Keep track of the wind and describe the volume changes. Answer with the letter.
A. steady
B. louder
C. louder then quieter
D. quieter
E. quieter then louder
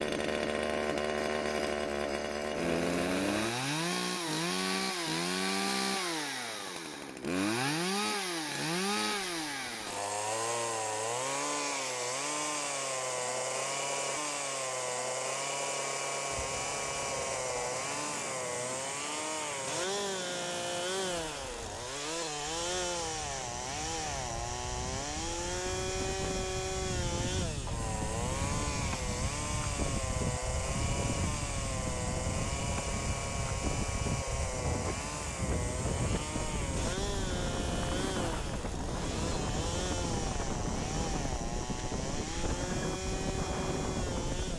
B.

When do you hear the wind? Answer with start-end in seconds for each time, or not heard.
16.3-44.5.